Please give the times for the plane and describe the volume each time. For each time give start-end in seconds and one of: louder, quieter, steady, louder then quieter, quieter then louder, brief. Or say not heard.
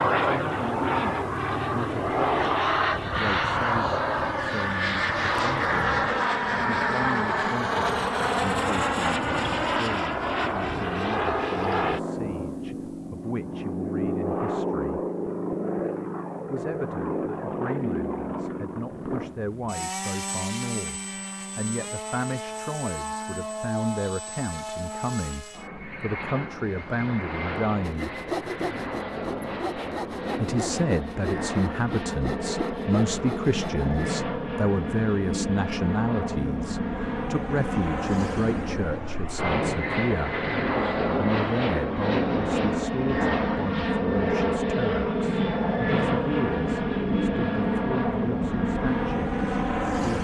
0.0-50.2 quieter then louder.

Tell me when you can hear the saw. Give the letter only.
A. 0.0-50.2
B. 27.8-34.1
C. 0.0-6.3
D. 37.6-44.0
B.